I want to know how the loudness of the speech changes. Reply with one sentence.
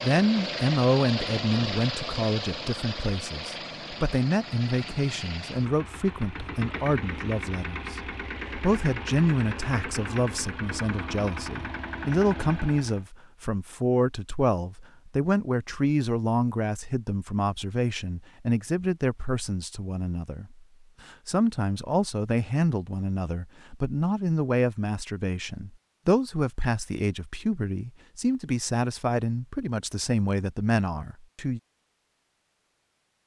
The volume of the speech stays about the same.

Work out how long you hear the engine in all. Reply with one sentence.
The engine can be heard for 13 seconds in total.